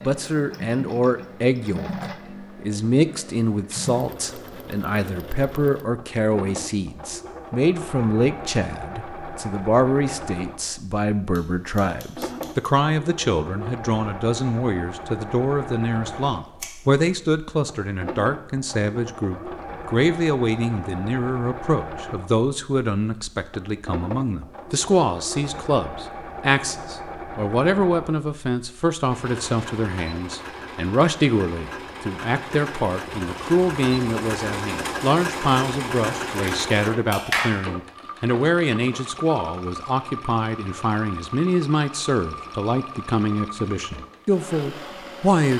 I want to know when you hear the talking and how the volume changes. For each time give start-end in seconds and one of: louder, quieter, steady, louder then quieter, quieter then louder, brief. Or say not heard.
0.0-45.5 steady.